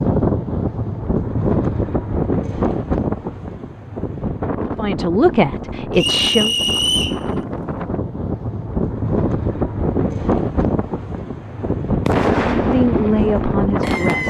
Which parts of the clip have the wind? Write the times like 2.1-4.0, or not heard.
0.0-14.2.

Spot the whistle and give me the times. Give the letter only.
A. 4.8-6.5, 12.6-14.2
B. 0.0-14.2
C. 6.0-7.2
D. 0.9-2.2
C.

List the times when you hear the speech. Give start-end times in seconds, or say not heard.
4.8-6.5, 12.6-14.2.